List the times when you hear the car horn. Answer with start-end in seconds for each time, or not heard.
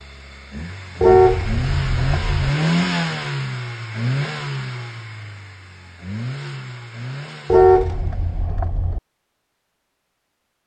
1.0-2.5, 7.5-9.0.